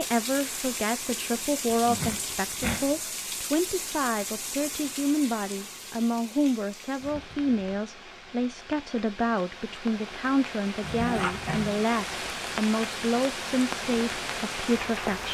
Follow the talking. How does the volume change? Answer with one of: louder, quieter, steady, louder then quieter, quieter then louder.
steady.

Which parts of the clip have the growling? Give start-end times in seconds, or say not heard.
1.6-3.0, 10.8-11.8.